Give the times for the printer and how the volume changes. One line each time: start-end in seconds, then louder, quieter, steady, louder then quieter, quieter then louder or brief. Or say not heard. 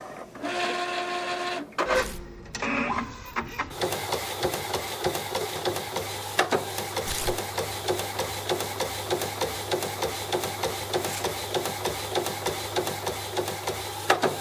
0.0-14.3 steady.